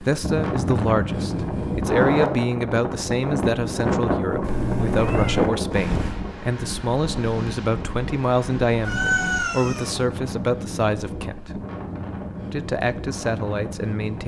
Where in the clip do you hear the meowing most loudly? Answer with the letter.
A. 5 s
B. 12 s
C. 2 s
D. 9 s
D.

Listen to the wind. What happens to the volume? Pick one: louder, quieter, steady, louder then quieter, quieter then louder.
quieter.